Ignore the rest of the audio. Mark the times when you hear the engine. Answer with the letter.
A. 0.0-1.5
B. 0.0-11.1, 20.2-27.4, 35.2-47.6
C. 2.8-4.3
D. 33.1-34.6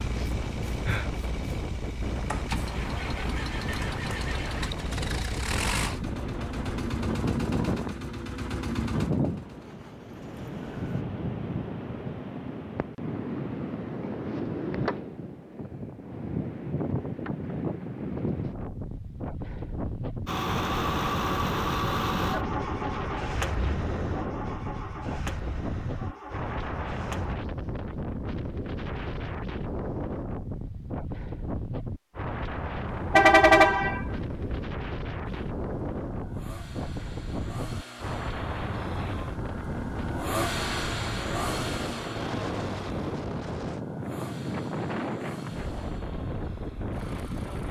B.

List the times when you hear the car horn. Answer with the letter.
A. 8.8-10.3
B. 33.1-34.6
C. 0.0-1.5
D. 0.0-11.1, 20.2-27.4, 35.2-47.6
B.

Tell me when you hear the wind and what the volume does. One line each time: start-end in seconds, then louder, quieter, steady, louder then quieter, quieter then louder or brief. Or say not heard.
0.0-47.6 steady.